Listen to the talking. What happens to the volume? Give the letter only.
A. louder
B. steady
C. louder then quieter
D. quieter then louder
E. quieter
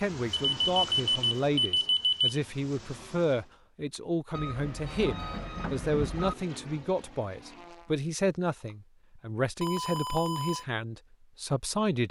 B.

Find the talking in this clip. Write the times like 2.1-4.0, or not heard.
0.0-12.0.